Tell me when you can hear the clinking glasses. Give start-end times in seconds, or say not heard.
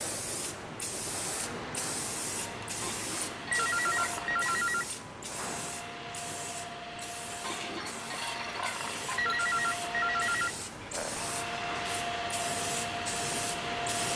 2.8-4.7, 7.4-9.3.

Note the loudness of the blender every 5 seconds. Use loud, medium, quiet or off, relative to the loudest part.
medium, medium, loud.